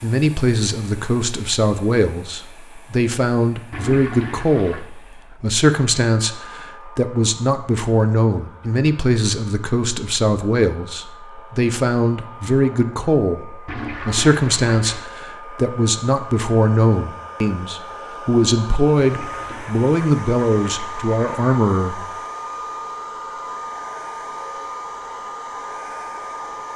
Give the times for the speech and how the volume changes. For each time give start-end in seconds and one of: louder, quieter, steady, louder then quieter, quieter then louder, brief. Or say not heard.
0.0-22.1 steady.